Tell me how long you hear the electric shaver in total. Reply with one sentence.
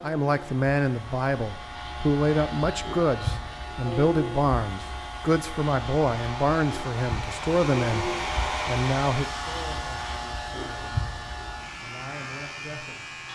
The electric shaver can be heard for 13 seconds in total.